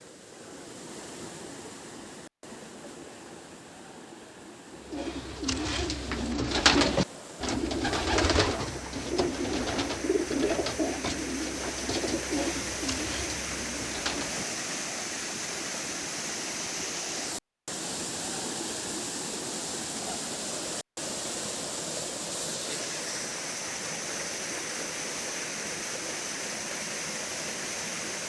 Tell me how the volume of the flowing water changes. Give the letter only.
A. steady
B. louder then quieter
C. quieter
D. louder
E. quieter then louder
D.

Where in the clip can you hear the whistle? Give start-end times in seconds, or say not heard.
not heard.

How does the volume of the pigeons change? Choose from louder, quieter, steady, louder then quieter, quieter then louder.
quieter.